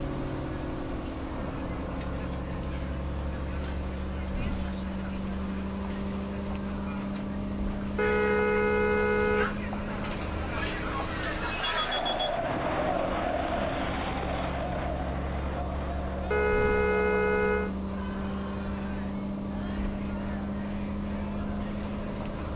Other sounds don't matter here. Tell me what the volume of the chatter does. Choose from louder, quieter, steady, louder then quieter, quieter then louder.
louder then quieter.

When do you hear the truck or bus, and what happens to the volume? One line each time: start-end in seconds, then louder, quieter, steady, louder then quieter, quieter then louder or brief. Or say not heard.
0.0-22.5 steady.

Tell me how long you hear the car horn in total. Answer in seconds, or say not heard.
3 s.